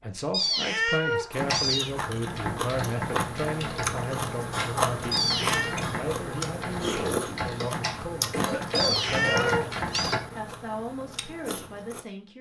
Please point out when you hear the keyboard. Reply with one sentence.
The keyboard can be heard from 1.4 to 10.2 s.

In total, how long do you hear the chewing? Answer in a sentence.
The chewing can be heard for 11 seconds in total.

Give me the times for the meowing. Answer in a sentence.
The meowing can be heard from 0.3 to 1.9 s, from 5.1 to 5.8 s and from 8.8 to 10.2 s.